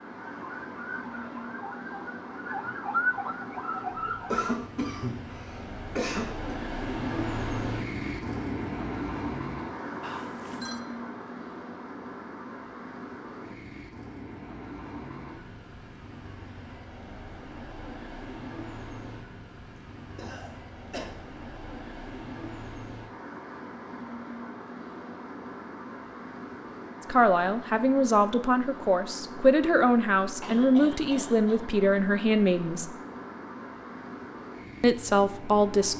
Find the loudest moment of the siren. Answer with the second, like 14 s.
3 s.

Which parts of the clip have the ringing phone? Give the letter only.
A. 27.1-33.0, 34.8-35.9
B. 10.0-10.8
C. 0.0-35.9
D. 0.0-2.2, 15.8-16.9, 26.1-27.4
B.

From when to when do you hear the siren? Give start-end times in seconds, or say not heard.
0.1-4.5.